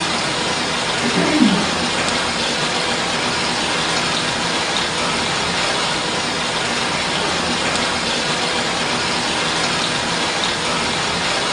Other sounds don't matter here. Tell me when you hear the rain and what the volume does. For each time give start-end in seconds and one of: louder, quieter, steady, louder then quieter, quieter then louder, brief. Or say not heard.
0.0-11.4 steady.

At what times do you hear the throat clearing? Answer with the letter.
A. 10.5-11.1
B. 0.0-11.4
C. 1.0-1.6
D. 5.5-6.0
C.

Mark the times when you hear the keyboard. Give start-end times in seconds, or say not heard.
not heard.